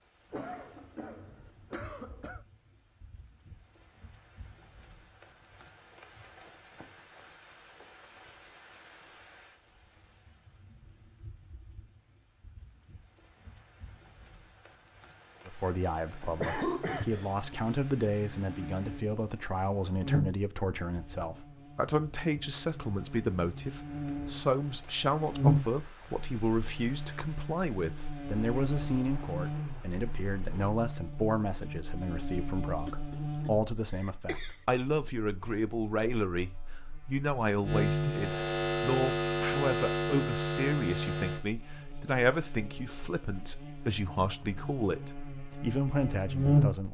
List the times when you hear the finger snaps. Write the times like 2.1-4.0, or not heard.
not heard.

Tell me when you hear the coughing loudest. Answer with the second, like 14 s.
17 s.